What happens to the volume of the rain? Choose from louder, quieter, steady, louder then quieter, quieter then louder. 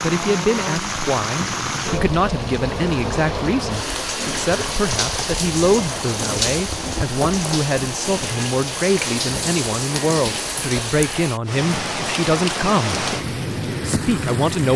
steady.